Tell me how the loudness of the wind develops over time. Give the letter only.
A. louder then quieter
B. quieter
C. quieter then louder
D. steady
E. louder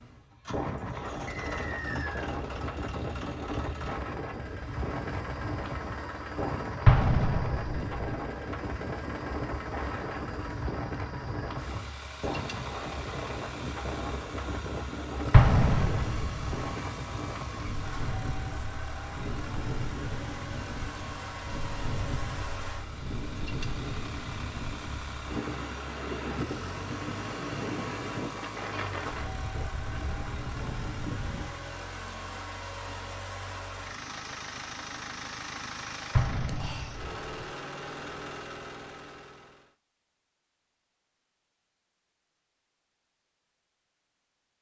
D.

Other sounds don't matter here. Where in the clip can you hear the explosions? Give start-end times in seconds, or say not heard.
6.8-8.1, 15.3-16.6, 36.1-37.5.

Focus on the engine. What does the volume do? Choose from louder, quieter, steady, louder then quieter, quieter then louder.
steady.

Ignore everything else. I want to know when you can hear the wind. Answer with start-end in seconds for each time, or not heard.
0.0-31.6.